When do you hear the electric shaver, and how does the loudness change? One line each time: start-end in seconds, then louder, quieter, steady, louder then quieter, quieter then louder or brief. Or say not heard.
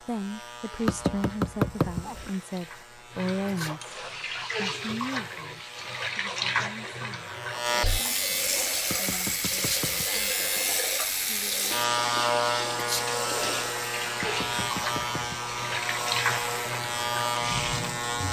0.0-18.2 louder.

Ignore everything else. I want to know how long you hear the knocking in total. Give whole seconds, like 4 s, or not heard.
4 s.